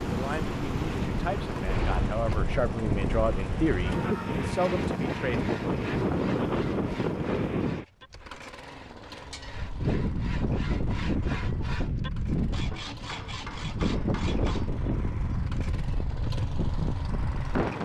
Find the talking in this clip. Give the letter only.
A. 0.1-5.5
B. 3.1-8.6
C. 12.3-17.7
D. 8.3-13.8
A.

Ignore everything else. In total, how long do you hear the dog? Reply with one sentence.
You can't hear the dog here.